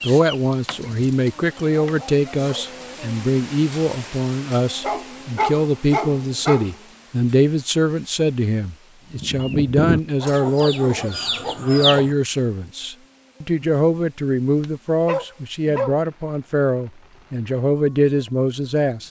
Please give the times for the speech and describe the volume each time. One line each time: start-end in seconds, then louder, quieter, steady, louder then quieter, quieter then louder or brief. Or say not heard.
0.0-19.0 steady.